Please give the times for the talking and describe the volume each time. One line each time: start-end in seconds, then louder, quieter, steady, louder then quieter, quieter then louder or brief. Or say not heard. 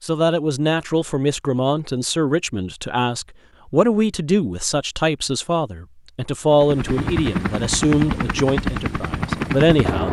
0.0-10.0 steady.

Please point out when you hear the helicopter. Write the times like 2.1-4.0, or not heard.
6.5-10.0.